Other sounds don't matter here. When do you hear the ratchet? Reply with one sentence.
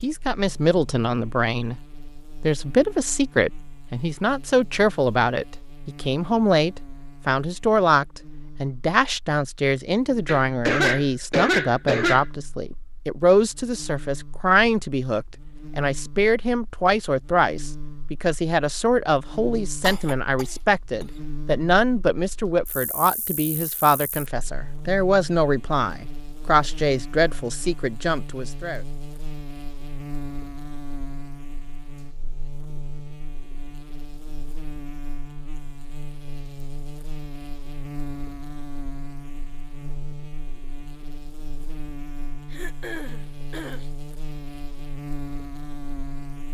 The ratchet can't be heard in this clip.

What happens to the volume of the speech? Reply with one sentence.
The volume of the speech stays about the same.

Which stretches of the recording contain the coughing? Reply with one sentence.
You can hear the coughing from 10.2 to 12.2 s, from 19.8 to 21.1 s and from 42.5 to 43.9 s.